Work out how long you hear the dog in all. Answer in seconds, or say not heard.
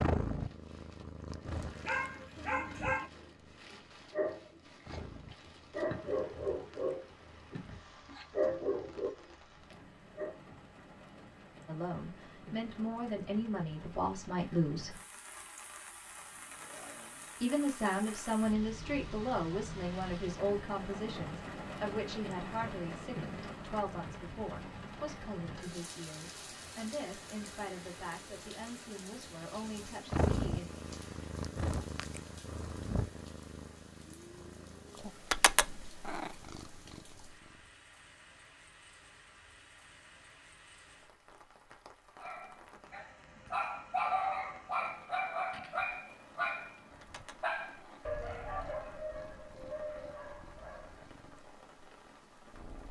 17 s.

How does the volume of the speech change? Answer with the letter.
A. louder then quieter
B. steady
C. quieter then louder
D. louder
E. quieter
E.